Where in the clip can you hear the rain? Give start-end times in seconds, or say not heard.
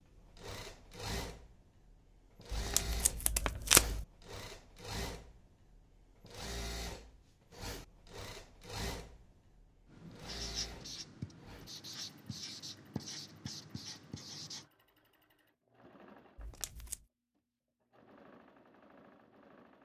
not heard.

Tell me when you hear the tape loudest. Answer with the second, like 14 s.
4 s.